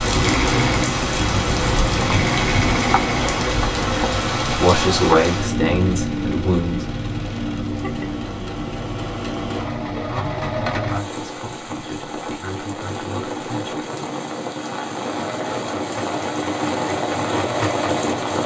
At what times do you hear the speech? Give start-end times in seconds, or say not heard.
4.5-6.8, 9.9-13.8.